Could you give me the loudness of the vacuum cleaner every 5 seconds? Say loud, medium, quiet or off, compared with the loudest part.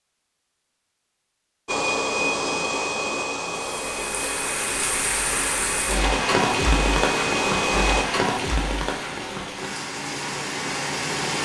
loud, loud, off.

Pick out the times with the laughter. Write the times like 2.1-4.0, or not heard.
not heard.